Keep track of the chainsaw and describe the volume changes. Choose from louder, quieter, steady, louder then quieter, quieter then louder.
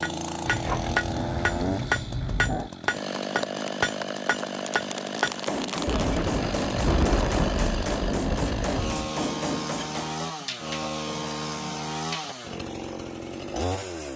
steady.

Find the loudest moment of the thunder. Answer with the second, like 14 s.
7 s.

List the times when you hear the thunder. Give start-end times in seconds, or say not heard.
5.8-9.0.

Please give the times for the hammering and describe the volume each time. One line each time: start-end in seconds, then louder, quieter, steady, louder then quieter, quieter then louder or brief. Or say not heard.
0.0-10.3 quieter.